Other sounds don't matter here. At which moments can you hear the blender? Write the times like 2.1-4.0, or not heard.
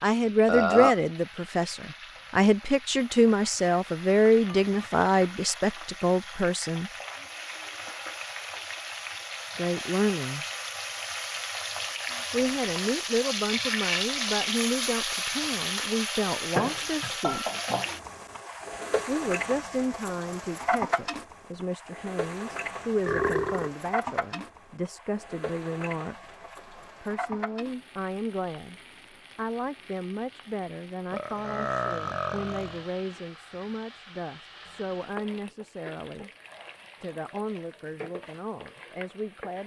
not heard.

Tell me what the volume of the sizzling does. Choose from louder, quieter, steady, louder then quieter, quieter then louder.
louder then quieter.